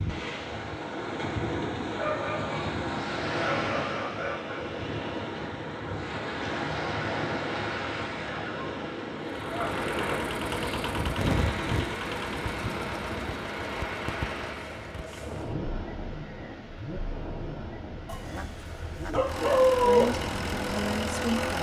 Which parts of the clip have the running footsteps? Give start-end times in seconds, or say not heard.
not heard.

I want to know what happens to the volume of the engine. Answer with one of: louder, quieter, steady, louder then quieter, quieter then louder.
quieter then louder.